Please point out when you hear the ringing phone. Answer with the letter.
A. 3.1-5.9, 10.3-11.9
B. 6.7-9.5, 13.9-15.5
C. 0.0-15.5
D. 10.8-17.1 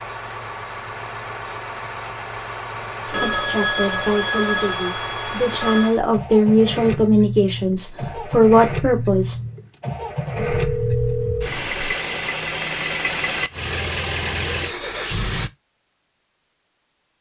A.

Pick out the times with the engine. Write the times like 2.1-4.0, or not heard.
0.0-15.5.